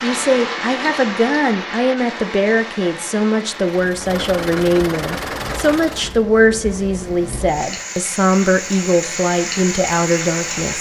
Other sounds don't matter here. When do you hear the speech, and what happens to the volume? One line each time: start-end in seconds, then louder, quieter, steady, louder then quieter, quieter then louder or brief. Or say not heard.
0.0-10.7 steady.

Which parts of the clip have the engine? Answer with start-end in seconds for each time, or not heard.
3.6-6.2.